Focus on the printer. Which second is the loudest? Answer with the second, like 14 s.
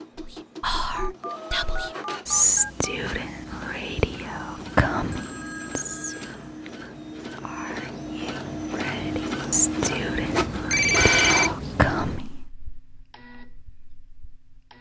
11 s.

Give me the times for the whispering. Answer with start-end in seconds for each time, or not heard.
0.1-12.3.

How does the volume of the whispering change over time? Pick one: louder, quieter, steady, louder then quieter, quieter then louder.
quieter then louder.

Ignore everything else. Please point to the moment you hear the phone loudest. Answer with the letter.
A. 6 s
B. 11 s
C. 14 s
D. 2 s
B.